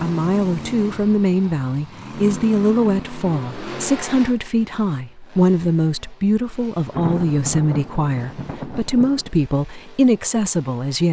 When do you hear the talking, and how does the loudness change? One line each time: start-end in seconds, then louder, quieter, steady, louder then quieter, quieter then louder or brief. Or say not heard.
0.0-11.0 steady.